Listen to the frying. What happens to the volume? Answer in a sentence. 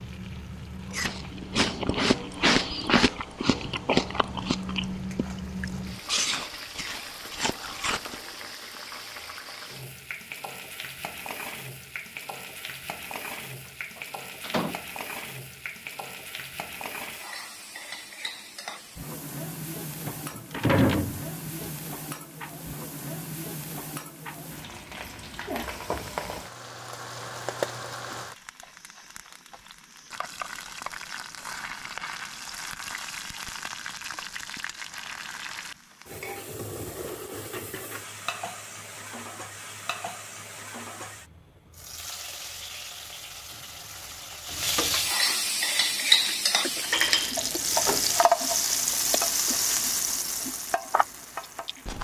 The loudness of the frying goes up.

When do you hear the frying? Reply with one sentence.
You can hear the frying from 0.0 to 51.9 s.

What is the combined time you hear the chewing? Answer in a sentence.
The chewing can be heard for 14 seconds in total.